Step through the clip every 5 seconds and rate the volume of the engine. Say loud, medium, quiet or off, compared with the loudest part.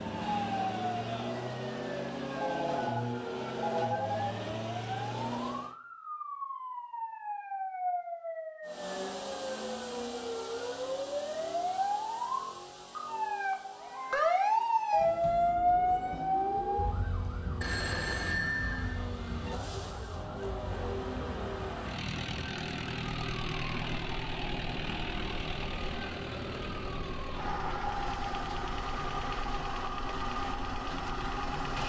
loud, loud, medium, medium, loud, loud, loud.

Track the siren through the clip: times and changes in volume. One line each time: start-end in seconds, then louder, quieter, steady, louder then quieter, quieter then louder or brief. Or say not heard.
0.2-31.8 louder then quieter.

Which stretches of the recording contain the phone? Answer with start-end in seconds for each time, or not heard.
2.3-4.3, 17.6-19.0.